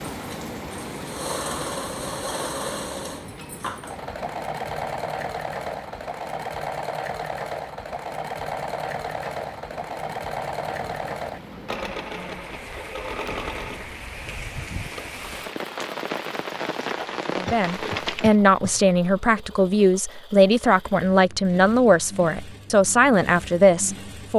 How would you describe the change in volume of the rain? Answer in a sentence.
The loudness of the rain goes down, then up.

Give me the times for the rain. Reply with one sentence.
You can hear the rain from 0.0 to 18.4 s.